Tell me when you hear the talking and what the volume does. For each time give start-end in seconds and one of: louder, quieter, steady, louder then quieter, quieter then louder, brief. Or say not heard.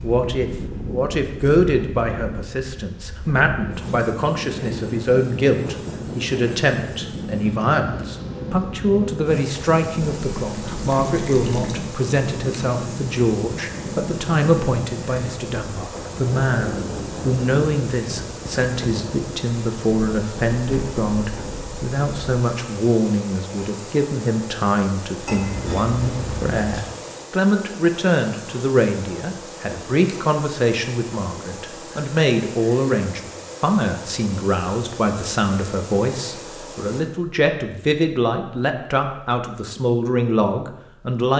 0.0-41.3 steady.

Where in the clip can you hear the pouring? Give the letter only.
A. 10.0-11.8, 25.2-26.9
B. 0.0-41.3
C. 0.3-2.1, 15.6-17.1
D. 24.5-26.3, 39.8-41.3
A.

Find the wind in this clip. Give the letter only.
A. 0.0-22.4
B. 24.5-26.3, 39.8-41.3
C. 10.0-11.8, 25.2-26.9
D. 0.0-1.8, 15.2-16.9
A.